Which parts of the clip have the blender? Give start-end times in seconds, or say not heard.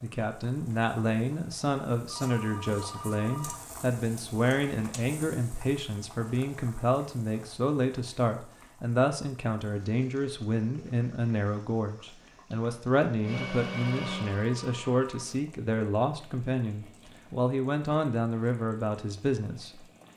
13.2-15.4.